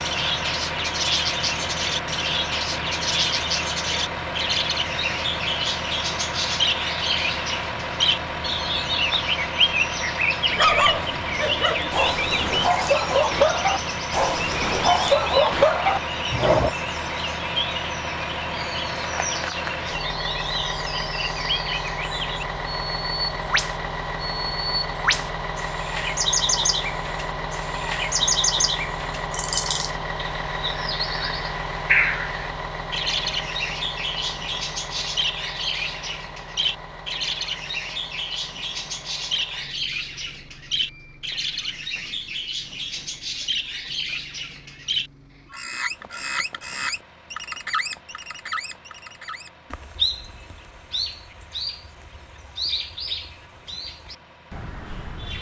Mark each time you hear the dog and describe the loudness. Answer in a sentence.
You can hear the dog from 10.5 to 16.7 s, getting louder.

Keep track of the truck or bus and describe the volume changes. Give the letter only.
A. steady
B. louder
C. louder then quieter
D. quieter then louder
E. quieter
E.